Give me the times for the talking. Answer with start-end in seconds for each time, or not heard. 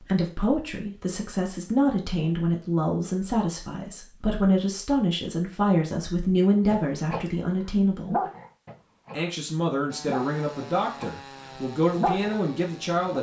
0.0-8.2, 9.1-13.1.